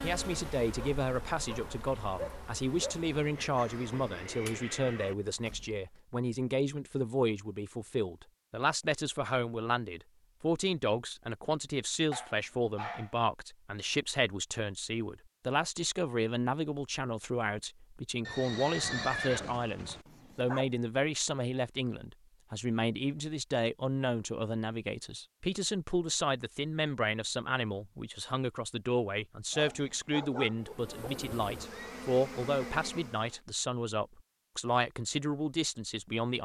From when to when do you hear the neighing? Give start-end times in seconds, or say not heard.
3.1-5.2, 18.2-20.1, 31.7-33.4.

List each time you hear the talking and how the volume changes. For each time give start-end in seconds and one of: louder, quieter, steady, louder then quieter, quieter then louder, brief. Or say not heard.
0.0-36.4 steady.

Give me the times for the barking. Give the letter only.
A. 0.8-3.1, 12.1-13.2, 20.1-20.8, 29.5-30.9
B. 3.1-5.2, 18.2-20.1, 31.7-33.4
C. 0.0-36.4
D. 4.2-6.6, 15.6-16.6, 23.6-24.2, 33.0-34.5
A.